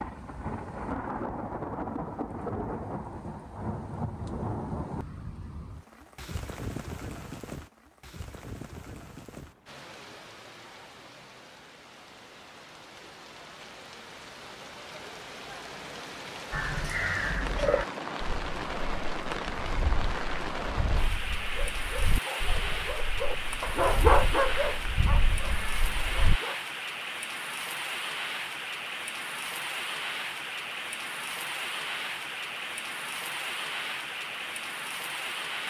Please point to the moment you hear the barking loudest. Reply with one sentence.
The loudest moment of the barking is at 24 seconds.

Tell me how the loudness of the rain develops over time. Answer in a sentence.
The volume of the rain goes down, then up.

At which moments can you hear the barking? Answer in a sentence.
The barking can be heard from 21.4 to 26.6 s.